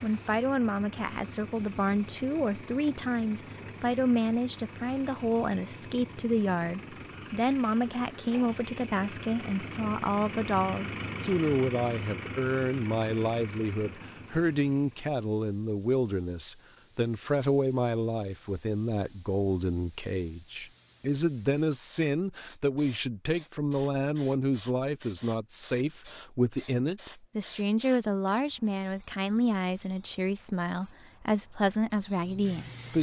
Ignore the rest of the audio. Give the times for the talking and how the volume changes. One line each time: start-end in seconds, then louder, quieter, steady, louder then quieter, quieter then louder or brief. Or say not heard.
0.0-32.9 steady.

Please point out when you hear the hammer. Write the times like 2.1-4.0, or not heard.
not heard.